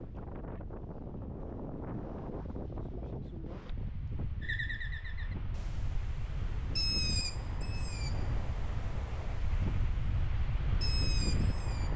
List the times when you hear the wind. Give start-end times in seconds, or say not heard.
0.0-11.9.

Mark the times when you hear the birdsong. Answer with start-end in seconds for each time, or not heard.
4.4-11.9.